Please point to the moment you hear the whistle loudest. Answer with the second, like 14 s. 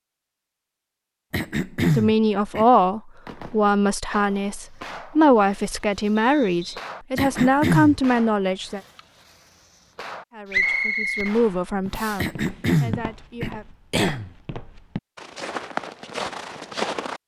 11 s.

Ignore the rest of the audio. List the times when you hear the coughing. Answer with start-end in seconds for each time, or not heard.
1.3-2.6, 7.2-8.0, 12.2-14.3.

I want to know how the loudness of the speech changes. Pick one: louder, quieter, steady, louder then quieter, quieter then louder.
quieter.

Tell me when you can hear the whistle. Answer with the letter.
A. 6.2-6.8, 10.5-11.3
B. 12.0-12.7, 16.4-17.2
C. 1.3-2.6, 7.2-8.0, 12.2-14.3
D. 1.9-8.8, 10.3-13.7
A.